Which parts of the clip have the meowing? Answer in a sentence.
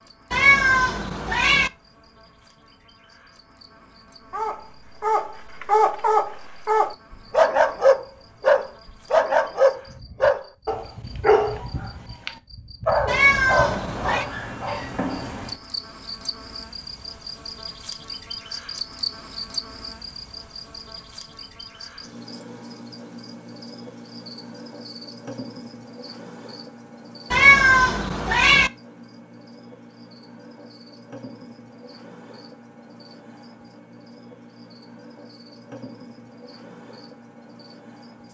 You can hear the meowing from 0.3 to 1.7 s, from 13.1 to 14.2 s and from 27.3 to 28.7 s.